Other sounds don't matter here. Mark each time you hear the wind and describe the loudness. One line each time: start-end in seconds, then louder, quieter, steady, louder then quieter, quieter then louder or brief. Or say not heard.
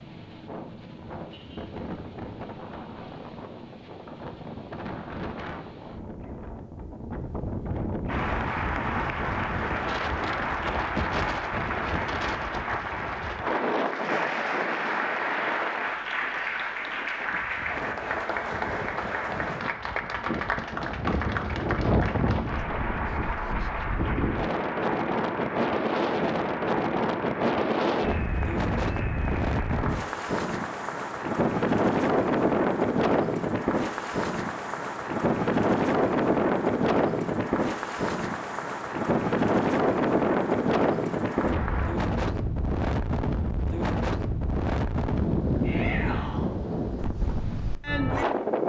0.0-48.6 louder.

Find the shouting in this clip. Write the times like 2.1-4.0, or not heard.
45.6-46.5.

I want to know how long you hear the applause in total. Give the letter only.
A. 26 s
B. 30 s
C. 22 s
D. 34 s
D.